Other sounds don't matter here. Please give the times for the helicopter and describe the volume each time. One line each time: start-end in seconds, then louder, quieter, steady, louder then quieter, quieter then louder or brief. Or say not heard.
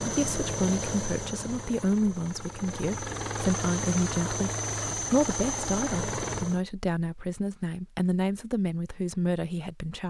0.0-6.6 quieter then louder.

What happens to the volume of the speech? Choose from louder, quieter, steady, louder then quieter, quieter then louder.
steady.